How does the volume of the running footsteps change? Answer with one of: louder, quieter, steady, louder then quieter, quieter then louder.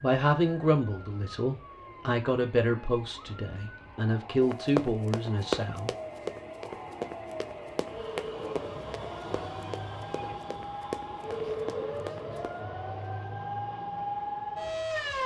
quieter.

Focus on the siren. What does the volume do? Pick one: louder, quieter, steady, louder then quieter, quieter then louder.
louder.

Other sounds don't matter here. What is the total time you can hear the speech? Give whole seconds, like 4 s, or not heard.
6 s.